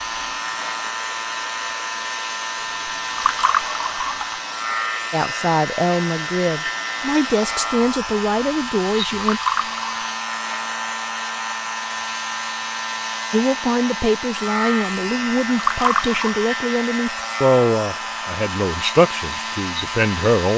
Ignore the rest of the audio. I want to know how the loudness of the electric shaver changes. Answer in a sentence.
The loudness of the electric shaver stays about the same.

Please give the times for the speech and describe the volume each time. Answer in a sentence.
You can hear the speech from 5.1 to 9.4 s, at a steady volume; and from 13.3 to 20.5 s, at a steady volume.